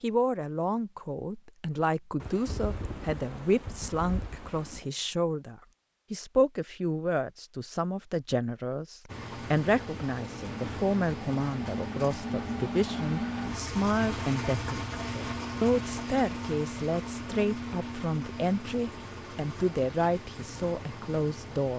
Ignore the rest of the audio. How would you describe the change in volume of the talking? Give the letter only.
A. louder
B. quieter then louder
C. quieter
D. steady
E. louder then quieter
D.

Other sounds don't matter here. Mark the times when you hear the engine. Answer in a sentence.
You can hear the engine from 9.1 to 21.7 s.